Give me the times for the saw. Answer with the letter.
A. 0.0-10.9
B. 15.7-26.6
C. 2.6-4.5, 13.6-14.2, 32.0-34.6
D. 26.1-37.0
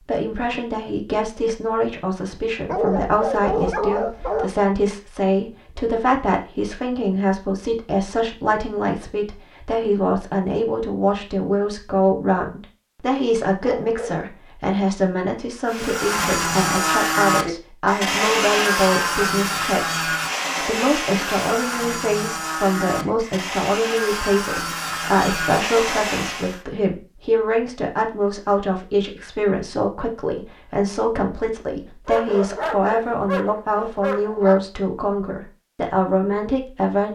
B.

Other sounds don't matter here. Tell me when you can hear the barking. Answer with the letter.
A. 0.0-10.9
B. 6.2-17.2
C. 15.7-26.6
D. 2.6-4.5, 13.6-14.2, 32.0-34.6
D.